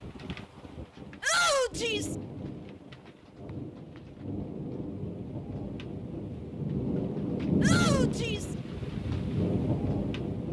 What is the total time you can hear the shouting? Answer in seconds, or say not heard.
2 s.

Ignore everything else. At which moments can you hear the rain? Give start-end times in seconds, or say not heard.
0.0-10.4.